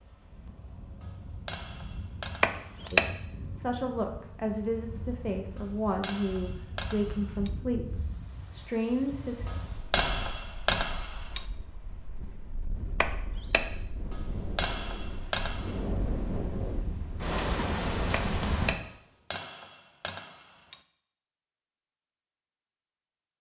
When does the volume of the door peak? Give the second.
3 s.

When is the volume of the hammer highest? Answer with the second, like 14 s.
11 s.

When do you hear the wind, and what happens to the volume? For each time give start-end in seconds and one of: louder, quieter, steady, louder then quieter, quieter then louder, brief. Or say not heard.
0.0-18.8 louder.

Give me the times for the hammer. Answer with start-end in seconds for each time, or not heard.
1.0-3.0, 5.5-7.5, 9.4-11.4, 14.1-15.8, 18.8-20.8.